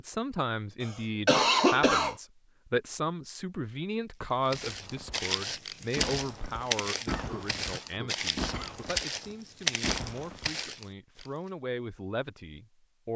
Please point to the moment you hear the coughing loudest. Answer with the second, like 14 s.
2 s.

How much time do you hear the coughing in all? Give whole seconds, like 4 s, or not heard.
3 s.